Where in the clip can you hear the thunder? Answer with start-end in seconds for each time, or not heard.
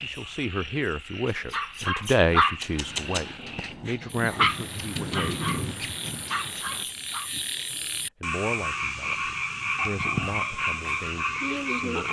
4.2-6.8.